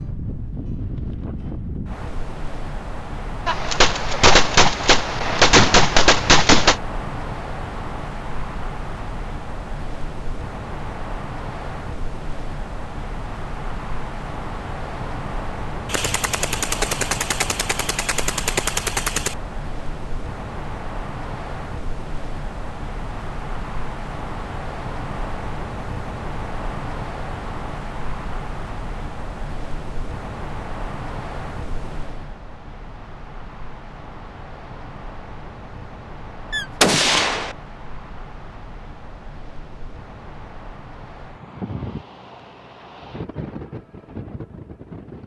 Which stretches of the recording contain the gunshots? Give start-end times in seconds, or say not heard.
3.5-6.8, 15.9-19.4, 36.5-37.5.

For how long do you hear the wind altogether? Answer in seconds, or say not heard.
45 s.